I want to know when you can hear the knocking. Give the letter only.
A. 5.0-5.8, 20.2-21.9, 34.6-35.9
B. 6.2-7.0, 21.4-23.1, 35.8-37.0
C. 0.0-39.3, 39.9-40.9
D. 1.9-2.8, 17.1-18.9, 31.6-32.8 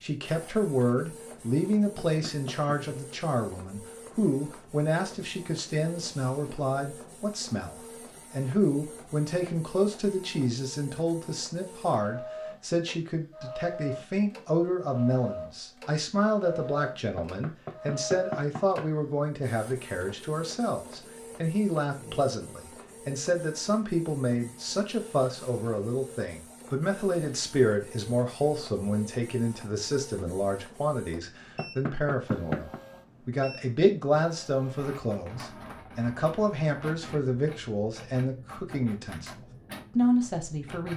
D.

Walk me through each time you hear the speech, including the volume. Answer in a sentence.
The speech can be heard from 0.0 to 39.3 s, at a steady volume; and briefly from 39.9 to 40.9 s.